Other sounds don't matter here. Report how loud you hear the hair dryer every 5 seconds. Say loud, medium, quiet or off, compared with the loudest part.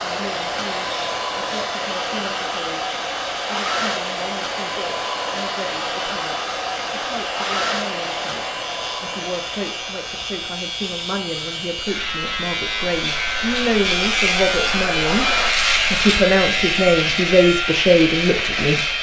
loud, loud, medium, loud.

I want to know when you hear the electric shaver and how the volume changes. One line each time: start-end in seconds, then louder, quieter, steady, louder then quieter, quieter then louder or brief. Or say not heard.
0.1-18.9 louder.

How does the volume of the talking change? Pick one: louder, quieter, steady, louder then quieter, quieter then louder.
louder.